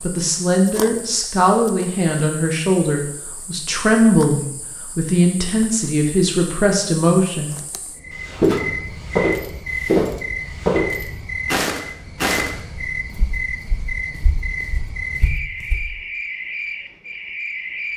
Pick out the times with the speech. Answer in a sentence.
You can hear the speech from 0.0 to 7.5 s.